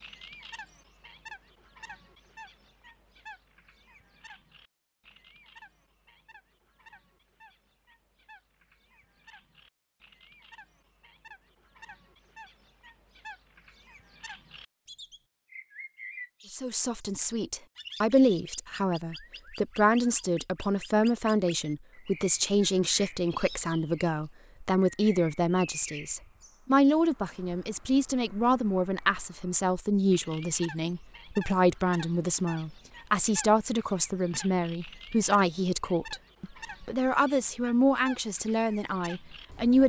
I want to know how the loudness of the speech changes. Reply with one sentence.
The volume of the speech stays about the same.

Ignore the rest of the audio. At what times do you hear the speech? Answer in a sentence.
The speech can be heard from 16.5 to 39.8 s.